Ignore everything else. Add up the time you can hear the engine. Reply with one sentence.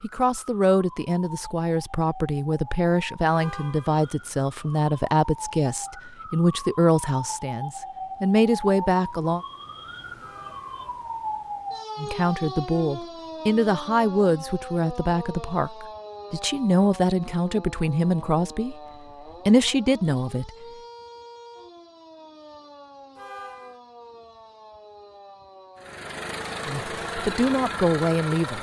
You can hear the engine for 3 seconds altogether.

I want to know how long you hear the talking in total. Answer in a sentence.
You can hear the talking for 19 seconds altogether.